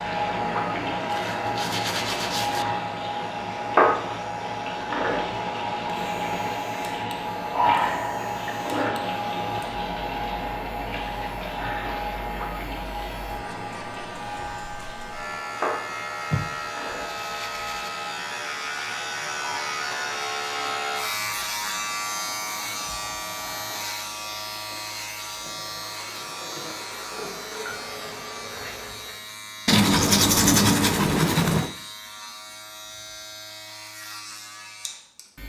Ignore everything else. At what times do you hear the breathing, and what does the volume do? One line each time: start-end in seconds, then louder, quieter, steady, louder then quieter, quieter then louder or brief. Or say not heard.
not heard.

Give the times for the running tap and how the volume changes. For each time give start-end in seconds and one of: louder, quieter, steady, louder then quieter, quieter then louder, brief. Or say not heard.
0.0-29.2 quieter.